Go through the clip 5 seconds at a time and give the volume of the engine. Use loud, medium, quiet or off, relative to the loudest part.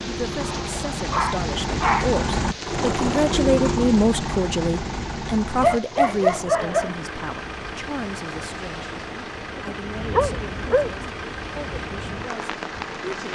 loud, medium, medium.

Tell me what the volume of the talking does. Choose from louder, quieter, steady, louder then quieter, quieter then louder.
louder then quieter.